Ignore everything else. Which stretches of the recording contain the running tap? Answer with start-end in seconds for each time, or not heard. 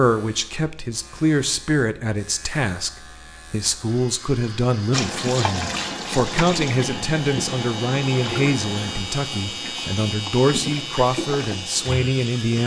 4.9-12.6.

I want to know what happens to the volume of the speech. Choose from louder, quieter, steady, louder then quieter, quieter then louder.
steady.